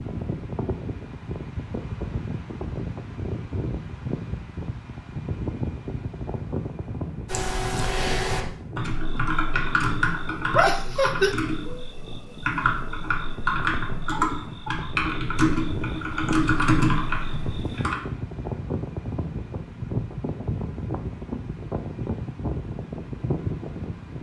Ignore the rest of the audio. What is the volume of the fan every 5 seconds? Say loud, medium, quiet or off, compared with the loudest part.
loud, loud, medium, loud, loud.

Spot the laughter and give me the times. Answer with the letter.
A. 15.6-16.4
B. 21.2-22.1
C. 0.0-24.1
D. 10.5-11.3
D.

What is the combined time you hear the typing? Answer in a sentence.
You can hear the typing for 11 seconds altogether.